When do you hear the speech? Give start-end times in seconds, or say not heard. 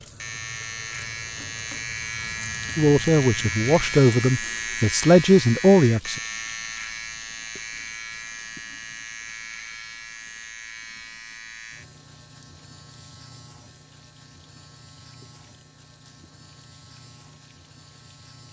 2.8-6.2.